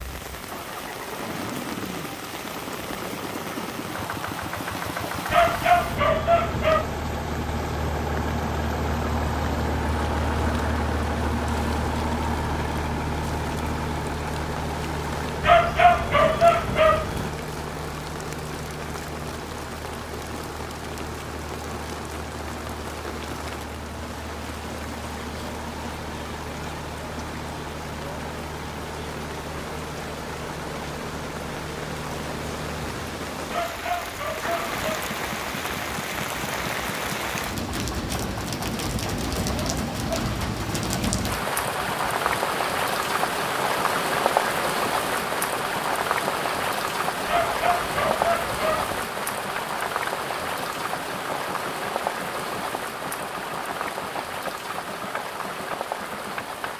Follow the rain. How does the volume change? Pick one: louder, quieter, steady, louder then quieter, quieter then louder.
louder.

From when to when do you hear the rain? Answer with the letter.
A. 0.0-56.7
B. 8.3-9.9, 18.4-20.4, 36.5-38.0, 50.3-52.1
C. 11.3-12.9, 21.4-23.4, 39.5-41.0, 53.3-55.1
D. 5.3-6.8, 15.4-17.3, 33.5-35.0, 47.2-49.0
A.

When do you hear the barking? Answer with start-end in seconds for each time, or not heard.
5.3-6.8, 15.4-17.3, 33.5-35.0, 47.2-49.0.